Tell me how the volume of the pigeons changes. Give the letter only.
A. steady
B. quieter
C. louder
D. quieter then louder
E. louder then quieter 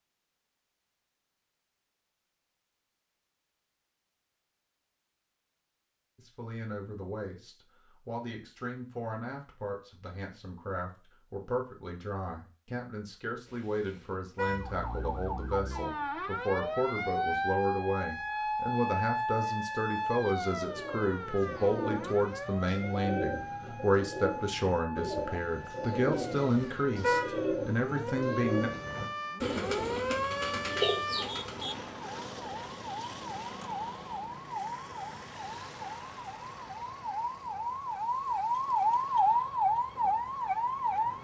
C.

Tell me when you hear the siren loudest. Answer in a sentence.
The volume of the siren peaks at 39 seconds.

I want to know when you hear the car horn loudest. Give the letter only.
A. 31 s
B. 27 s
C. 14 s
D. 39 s
B.